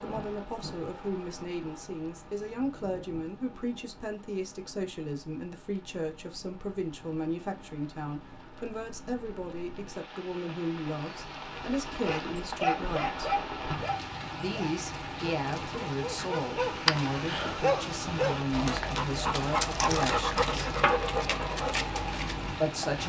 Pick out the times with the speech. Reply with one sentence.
You can hear the speech from 0.0 to 13.3 s, from 14.4 to 20.7 s and from 22.6 to 23.0 s.